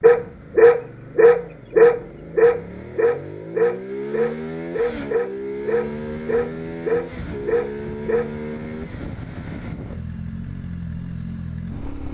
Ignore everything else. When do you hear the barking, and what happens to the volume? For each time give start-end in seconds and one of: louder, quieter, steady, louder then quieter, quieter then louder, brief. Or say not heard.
0.0-8.2 quieter.